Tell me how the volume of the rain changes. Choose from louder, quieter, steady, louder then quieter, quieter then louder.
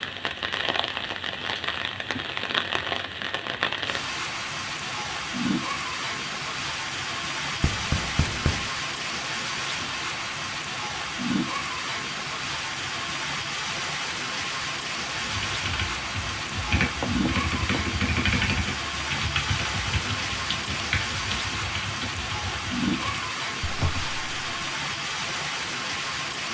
steady.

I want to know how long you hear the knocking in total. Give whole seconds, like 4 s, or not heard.
2 s.